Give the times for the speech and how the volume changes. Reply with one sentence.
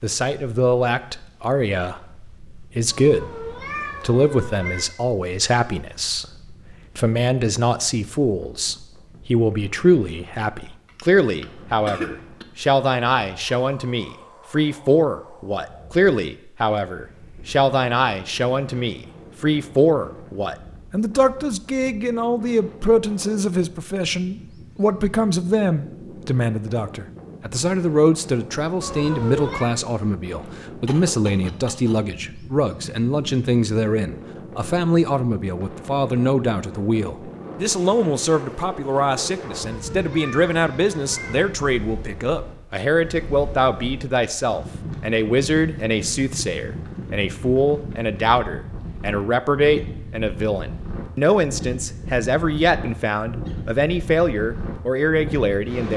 The speech can be heard from 0.0 to 55.9 s, at a steady volume.